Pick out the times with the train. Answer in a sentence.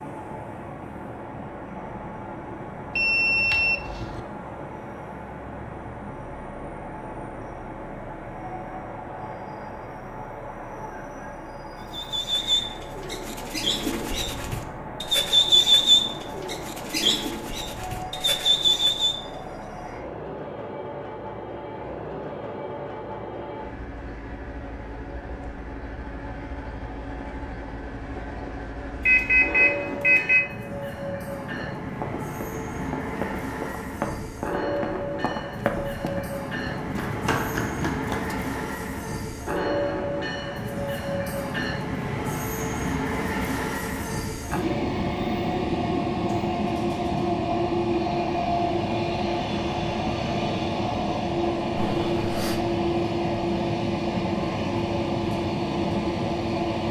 You can hear the train from 0.0 to 56.8 s.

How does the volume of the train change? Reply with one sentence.
The loudness of the train goes up.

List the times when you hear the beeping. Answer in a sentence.
You can hear the beeping from 3.0 to 4.2 s, from 29.1 to 30.4 s and from 51.8 to 52.6 s.